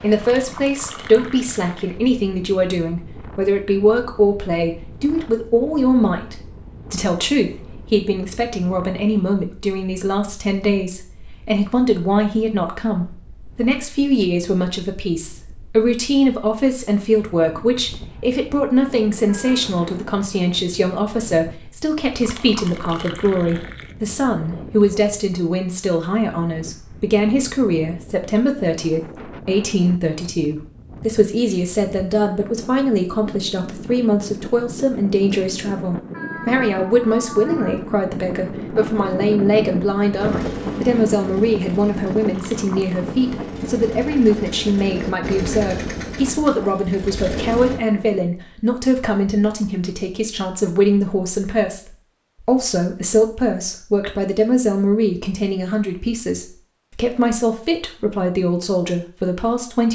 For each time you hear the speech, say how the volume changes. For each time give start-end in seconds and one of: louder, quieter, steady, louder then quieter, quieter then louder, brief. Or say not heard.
0.0-59.9 steady.